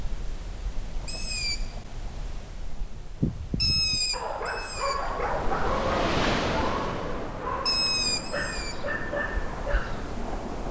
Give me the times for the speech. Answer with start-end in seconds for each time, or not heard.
not heard.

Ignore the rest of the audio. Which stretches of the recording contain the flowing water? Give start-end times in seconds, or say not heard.
5.1-10.6.